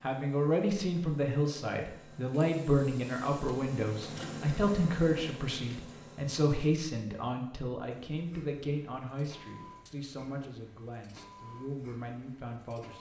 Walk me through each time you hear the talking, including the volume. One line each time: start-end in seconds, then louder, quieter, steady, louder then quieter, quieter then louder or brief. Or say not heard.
0.0-12.9 quieter.